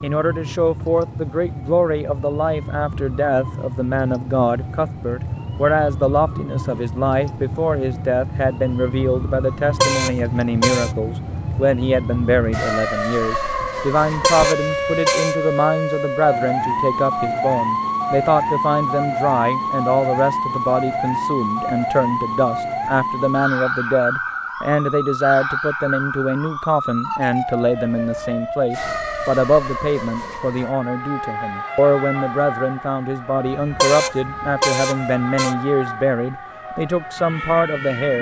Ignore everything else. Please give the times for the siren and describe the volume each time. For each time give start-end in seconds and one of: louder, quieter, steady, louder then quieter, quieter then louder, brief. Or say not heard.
0.0-38.1 louder then quieter.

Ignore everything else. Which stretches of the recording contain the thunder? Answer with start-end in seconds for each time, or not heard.
not heard.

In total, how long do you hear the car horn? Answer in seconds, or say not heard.
5 s.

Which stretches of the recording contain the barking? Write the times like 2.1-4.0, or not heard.
not heard.